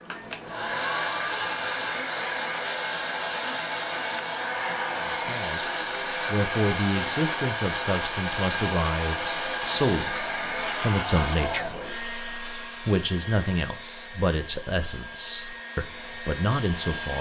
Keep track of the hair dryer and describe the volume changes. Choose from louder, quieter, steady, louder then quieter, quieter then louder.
quieter.